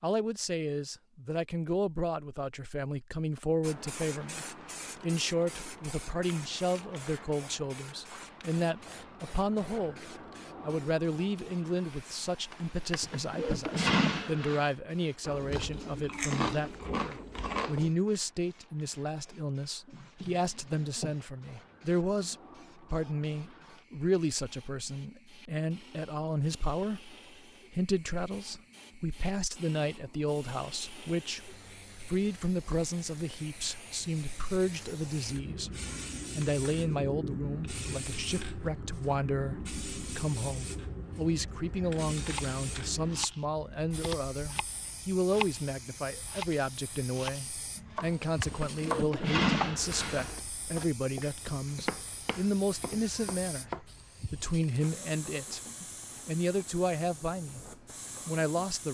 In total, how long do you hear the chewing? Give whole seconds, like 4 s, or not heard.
3 s.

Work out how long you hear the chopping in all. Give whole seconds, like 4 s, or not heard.
12 s.